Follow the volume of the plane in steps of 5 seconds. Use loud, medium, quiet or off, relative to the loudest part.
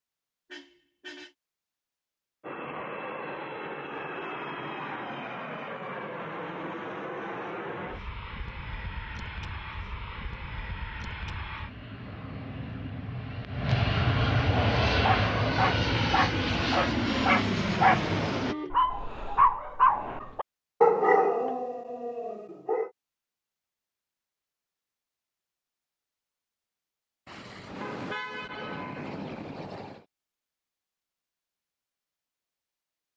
medium, medium, loud, loud, off, off, off.